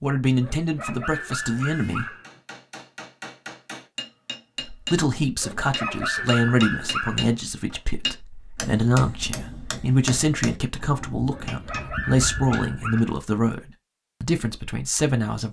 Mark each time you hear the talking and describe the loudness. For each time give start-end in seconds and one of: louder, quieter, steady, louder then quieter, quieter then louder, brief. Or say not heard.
0.0-2.0 brief
4.7-15.4 steady.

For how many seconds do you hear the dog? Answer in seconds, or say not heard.
6 s.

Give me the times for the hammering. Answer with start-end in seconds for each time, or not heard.
2.0-12.8.